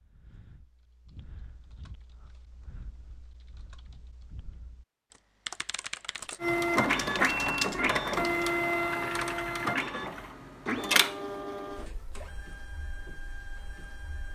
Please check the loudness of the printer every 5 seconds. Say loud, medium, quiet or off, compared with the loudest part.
off, loud, medium.